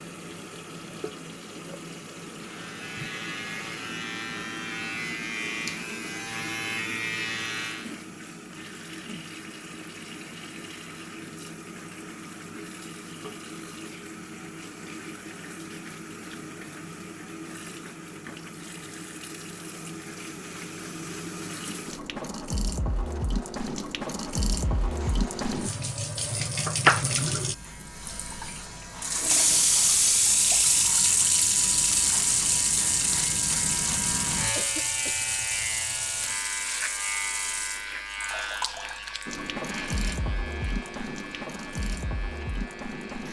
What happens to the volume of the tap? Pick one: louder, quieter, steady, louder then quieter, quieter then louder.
louder then quieter.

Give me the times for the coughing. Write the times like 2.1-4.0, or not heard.
34.5-35.2.